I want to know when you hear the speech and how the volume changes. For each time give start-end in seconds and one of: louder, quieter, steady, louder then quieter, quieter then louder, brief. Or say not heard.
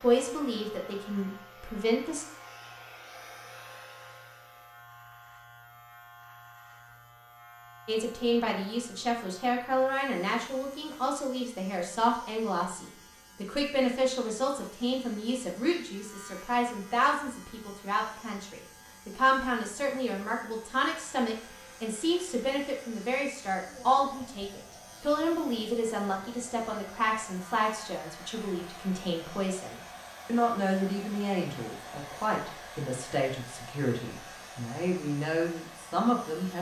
0.0-2.2 brief
7.8-36.5 steady.